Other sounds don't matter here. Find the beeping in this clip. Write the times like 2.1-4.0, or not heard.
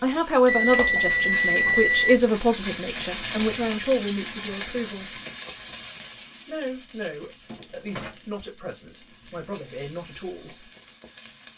0.5-2.2.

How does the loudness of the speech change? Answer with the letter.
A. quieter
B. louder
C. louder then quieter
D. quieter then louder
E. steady
A.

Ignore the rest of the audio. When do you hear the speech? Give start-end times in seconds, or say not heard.
0.0-5.2, 6.5-10.7.